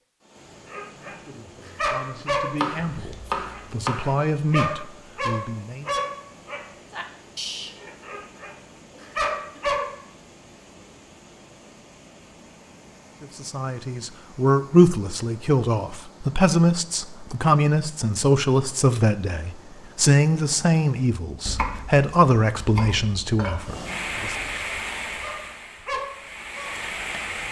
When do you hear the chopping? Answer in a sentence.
The chopping can be heard from 2.5 to 4.1 s and from 21.4 to 23.8 s.